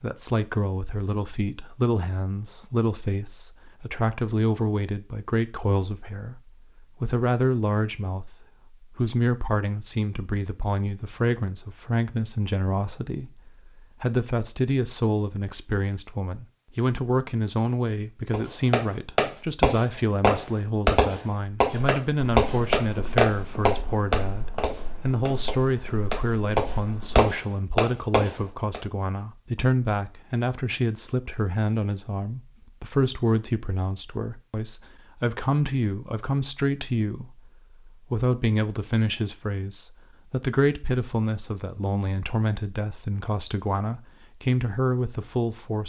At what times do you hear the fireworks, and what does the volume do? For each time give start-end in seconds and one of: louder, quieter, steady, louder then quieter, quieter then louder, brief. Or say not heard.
18.3-28.8 quieter then louder.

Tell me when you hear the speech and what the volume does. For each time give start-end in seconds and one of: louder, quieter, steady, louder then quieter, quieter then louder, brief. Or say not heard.
0.0-45.8 steady.